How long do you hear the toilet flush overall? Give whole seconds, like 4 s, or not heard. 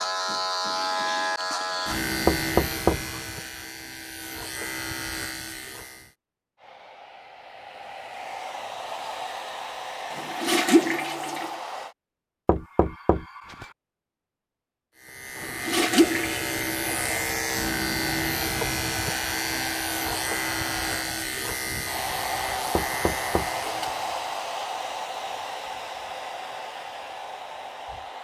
3 s.